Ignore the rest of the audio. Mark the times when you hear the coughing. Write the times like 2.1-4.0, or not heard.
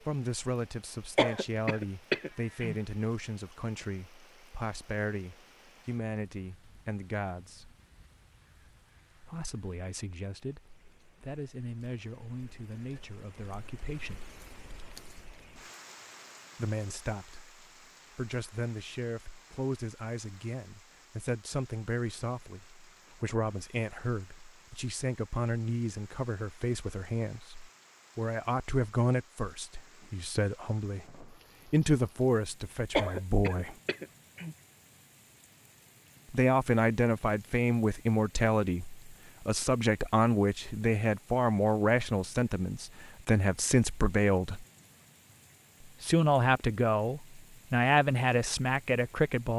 1.1-2.8, 32.9-34.5.